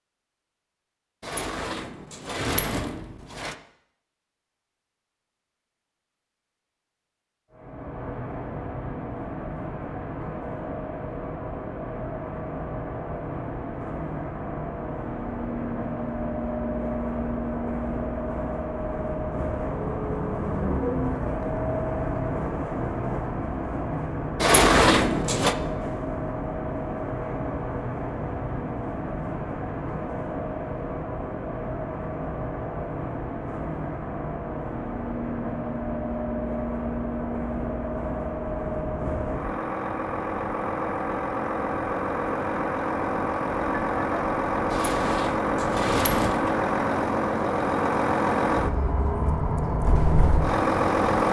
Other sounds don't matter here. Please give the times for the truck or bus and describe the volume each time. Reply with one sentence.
You can hear the truck or bus from 7.5 to 51.2 s, getting louder.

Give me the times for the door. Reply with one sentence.
The door can be heard from 1.2 to 3.5 s, from 24.4 to 25.6 s and from 44.7 to 46.5 s.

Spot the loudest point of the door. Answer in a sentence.
The volume of the door peaks at 25 seconds.